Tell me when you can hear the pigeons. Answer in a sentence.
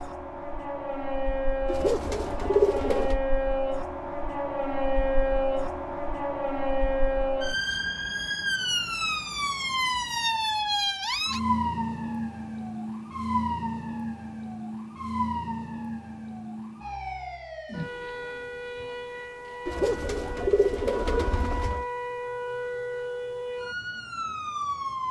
The pigeons can be heard from 1.6 to 3.2 s and from 19.6 to 21.9 s.